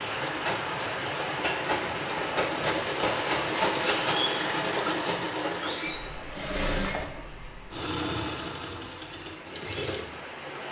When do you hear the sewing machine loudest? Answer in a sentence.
The volume of the sewing machine peaks at 4 seconds.